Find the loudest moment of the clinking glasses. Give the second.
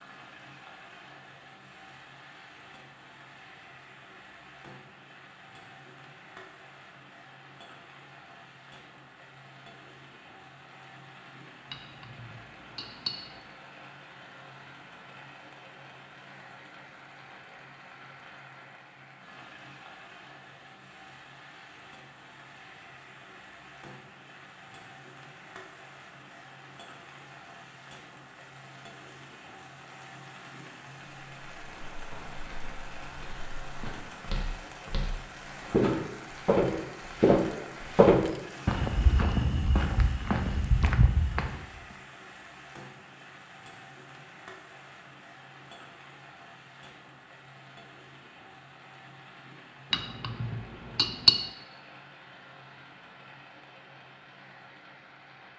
51 s.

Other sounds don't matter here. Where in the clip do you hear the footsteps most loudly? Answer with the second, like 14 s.
38 s.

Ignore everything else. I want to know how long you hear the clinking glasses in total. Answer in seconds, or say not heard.
3 s.